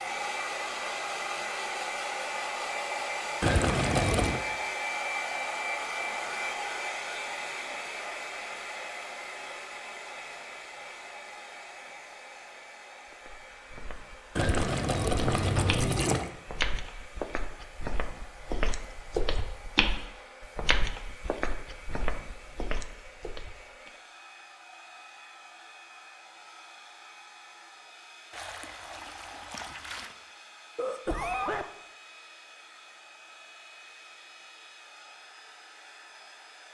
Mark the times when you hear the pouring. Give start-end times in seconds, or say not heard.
3.4-4.4, 14.3-16.3, 28.3-30.1.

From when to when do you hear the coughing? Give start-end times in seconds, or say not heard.
30.8-31.7.